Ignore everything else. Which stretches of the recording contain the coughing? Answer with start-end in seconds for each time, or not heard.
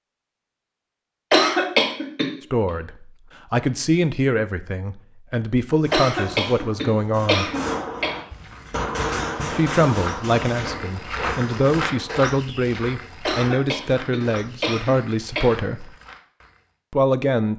1.3-2.3, 5.9-8.2, 13.2-15.5.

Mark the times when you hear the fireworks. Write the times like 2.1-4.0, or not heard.
5.8-12.3.